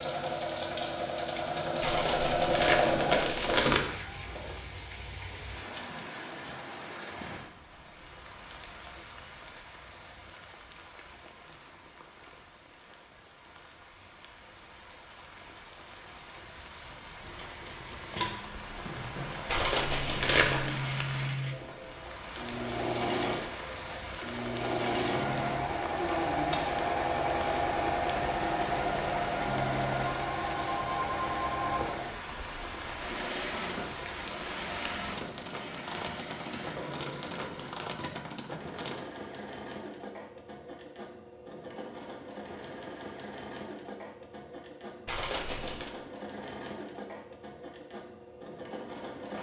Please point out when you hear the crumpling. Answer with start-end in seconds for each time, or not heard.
1.8-3.8, 19.4-20.7, 45.0-46.0.